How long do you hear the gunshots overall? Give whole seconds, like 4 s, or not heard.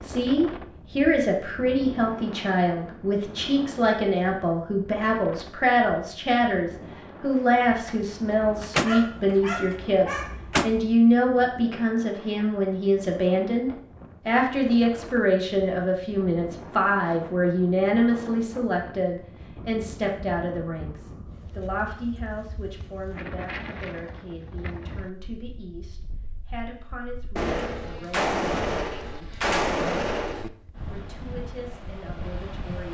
6 s.